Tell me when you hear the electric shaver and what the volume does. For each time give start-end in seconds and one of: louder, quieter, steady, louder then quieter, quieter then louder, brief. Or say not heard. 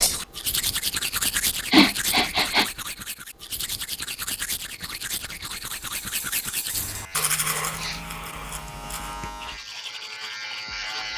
6.8-11.1 louder.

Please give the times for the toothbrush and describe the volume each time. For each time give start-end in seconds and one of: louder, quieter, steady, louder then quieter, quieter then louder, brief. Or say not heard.
0.0-11.1 quieter.